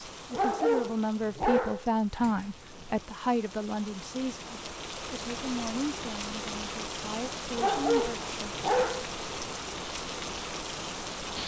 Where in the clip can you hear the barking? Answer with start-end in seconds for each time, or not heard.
0.3-2.9, 7.5-9.5.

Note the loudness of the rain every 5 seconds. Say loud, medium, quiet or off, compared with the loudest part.
medium, loud, loud.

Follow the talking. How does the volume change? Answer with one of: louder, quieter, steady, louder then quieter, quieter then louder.
quieter.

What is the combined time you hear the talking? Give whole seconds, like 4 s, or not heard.
8 s.